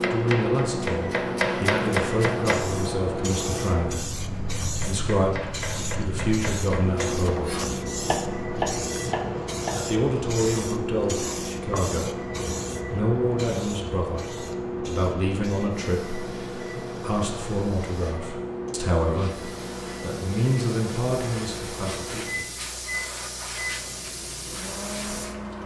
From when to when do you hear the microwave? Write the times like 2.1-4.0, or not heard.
0.0-25.6.